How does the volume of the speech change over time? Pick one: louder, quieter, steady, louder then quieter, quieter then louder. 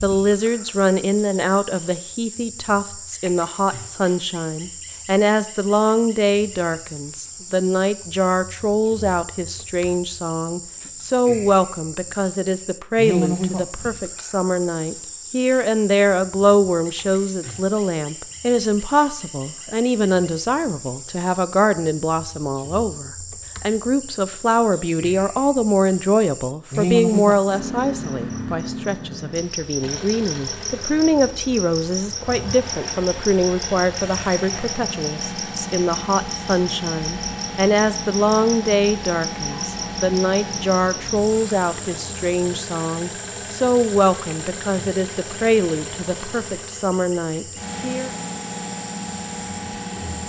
steady.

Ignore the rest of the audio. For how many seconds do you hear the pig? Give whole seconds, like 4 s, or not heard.
not heard.